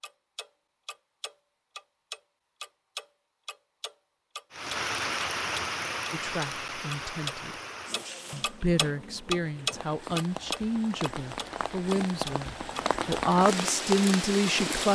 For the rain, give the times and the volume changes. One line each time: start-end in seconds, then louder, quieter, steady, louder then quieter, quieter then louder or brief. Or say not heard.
4.5-14.9 quieter then louder.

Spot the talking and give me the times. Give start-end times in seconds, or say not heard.
6.1-7.5, 8.3-14.9.